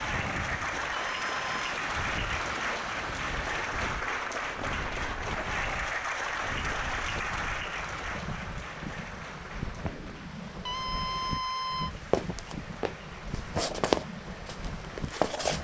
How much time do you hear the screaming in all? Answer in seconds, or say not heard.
2 s.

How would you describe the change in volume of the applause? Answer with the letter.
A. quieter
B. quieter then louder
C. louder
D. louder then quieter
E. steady
A.